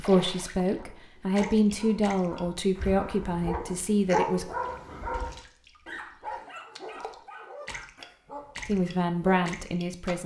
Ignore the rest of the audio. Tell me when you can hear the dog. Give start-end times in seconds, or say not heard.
0.7-9.6.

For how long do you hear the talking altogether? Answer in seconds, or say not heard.
6 s.